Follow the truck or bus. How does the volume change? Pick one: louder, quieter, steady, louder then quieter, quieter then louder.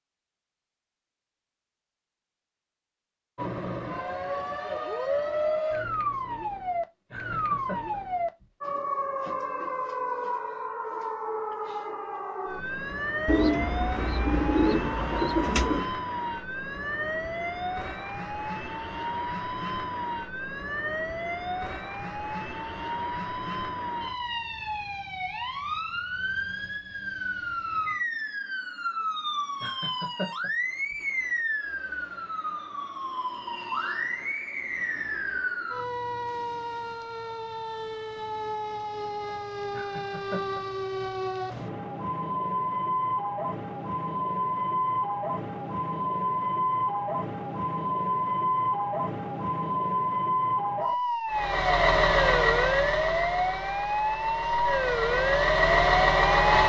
quieter then louder.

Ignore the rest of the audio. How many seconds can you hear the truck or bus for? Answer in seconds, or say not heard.
5 s.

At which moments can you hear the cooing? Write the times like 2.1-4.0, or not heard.
13.2-15.9.